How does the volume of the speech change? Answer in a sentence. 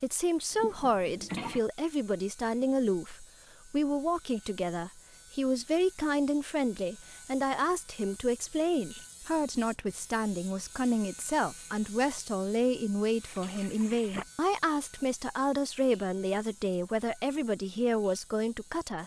The loudness of the speech stays about the same.